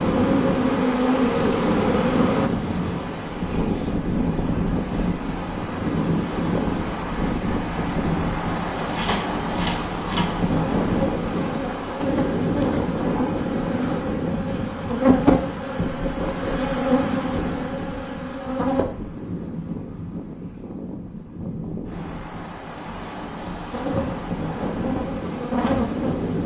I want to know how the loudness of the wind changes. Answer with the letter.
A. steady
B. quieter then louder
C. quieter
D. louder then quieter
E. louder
C.